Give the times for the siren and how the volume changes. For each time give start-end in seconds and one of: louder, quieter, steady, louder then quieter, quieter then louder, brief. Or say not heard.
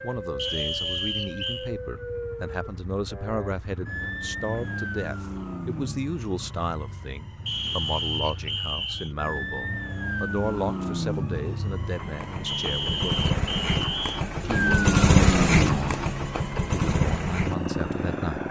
0.0-18.4 louder.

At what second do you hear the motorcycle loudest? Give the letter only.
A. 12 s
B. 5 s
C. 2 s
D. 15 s
D.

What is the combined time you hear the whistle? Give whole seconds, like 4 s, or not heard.
5 s.